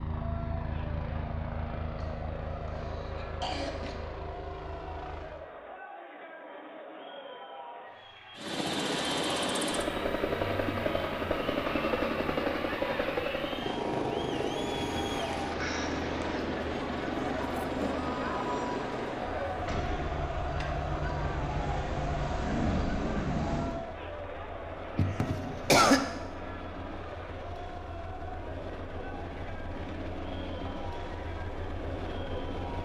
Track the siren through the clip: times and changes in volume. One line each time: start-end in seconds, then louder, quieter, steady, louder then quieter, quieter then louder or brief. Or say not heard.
19.5-23.9 louder.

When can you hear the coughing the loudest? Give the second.
26 s.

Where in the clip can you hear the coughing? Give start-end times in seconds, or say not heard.
2.7-4.0, 15.3-16.4, 24.9-26.0.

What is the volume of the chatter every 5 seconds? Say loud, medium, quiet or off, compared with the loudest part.
medium, medium, medium, loud, loud, medium, medium.